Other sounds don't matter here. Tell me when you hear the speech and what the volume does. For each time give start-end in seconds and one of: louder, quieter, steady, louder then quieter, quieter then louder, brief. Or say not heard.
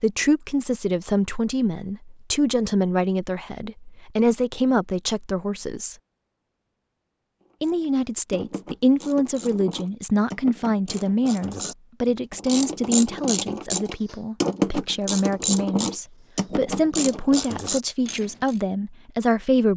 0.0-6.0 steady
7.6-19.7 steady.